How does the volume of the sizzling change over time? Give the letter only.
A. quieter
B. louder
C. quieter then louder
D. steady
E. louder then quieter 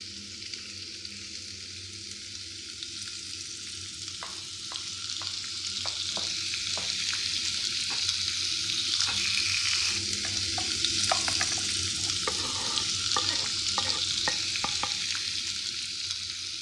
B.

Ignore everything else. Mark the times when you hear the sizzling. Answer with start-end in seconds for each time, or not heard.
0.0-16.5.